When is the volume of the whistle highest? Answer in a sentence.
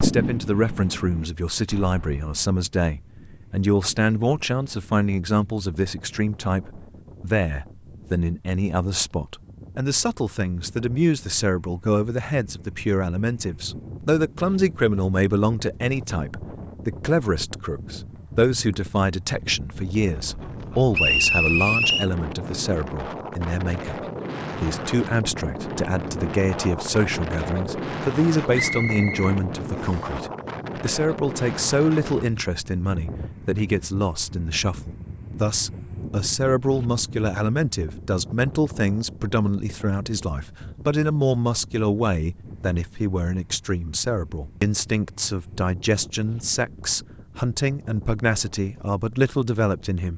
The loudest moment of the whistle is at 21 seconds.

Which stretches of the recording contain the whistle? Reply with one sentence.
The whistle can be heard from 20.9 to 22.1 s and from 28.6 to 30.1 s.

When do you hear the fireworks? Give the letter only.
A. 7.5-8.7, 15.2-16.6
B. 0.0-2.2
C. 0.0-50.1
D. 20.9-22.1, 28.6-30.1
B.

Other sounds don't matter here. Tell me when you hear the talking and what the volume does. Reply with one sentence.
You can hear the talking from 0.0 to 50.1 s, at a steady volume.